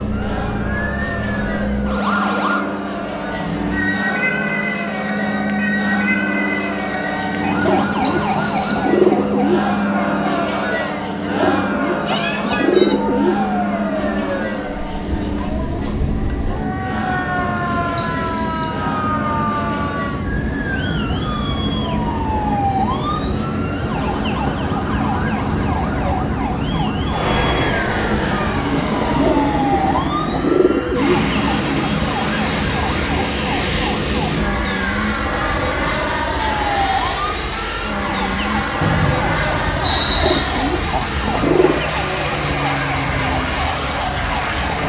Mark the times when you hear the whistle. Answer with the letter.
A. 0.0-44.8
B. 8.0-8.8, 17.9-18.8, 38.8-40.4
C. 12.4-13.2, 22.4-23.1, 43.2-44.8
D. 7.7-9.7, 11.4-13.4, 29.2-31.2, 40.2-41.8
B.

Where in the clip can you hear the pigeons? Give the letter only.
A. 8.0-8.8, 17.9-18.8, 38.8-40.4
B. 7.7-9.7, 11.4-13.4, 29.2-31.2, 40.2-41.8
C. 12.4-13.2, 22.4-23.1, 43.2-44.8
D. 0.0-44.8
B.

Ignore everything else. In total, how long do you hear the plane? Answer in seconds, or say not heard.
45 s.